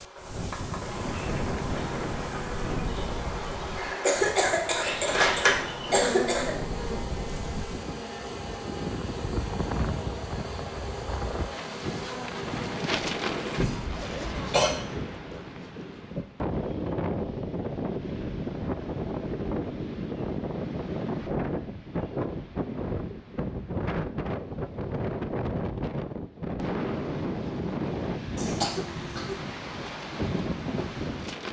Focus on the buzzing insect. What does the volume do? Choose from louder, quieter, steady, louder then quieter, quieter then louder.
louder then quieter.